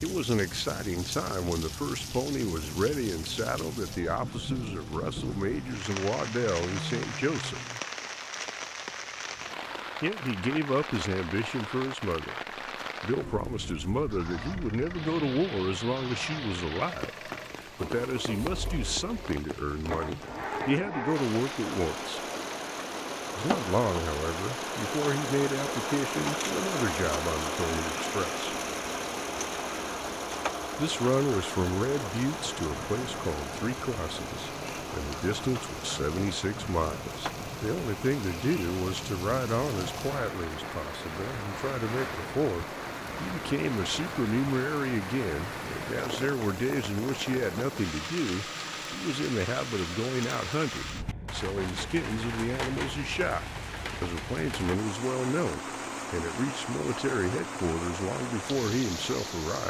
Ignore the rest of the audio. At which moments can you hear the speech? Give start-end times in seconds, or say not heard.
0.0-7.6, 10.0-12.3, 13.0-22.2, 23.4-28.6, 30.8-59.6.